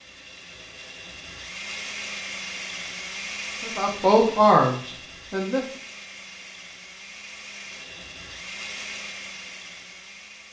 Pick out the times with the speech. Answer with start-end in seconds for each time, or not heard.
3.6-5.7.